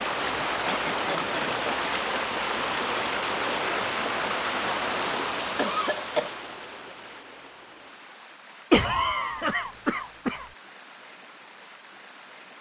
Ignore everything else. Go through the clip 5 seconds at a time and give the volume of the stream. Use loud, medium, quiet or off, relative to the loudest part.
loud, medium, quiet.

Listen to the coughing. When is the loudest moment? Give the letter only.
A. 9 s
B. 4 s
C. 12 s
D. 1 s
A.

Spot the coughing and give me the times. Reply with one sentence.
The coughing can be heard from 0.5 to 1.6 s, from 5.5 to 6.3 s and from 8.7 to 10.4 s.